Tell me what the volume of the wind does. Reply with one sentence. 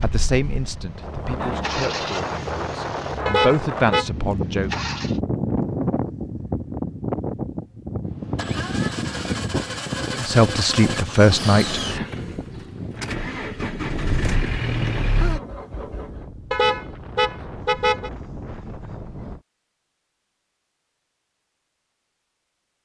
The volume of the wind goes down.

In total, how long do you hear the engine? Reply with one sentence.
The engine can be heard for 13 seconds in total.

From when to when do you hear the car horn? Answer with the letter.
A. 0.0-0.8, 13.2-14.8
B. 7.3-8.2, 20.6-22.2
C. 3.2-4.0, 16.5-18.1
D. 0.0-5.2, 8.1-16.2
C.